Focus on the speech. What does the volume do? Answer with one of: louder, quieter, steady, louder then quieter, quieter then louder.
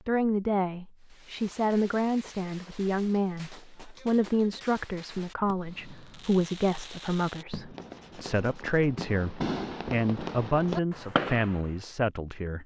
steady.